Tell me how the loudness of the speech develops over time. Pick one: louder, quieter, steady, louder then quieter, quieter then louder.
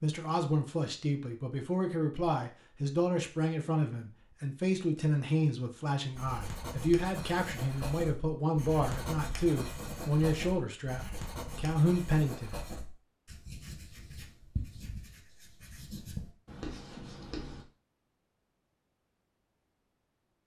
steady.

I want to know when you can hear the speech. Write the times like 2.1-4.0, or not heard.
0.0-12.6.